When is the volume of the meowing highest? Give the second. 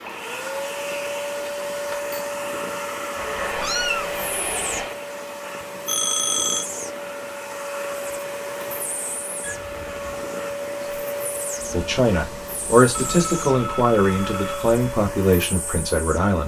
4 s.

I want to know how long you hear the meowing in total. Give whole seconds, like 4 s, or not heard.
3 s.